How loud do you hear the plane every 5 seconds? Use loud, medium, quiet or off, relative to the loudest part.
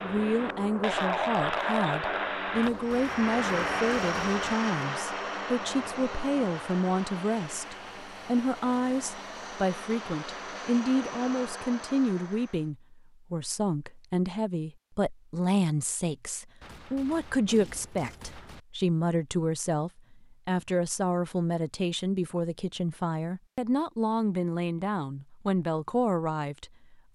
loud, medium, medium, off, off, off.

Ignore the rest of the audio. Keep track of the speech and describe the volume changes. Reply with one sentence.
The loudness of the speech stays about the same.